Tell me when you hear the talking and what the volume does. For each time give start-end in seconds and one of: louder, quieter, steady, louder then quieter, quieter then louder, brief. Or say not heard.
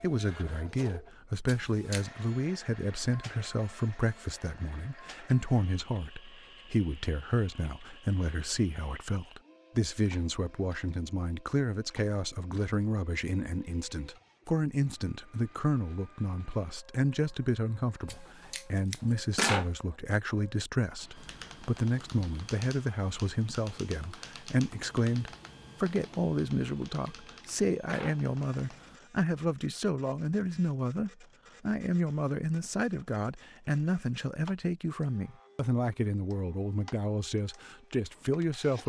0.0-38.8 steady.